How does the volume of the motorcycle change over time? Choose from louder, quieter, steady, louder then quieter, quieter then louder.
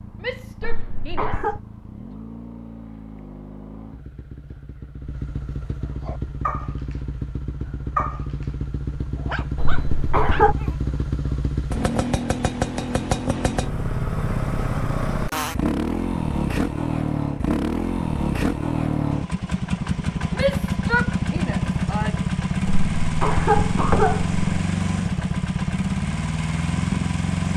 louder.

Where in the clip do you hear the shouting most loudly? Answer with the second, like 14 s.
21 s.